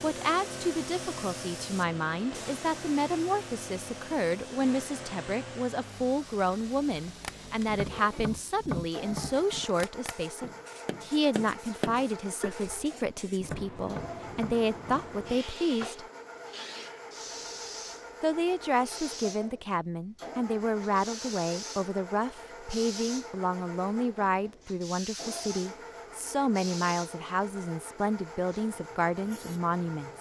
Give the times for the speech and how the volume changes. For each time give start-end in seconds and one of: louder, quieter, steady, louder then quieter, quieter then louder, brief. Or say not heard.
0.0-16.1 steady
18.2-30.1 steady.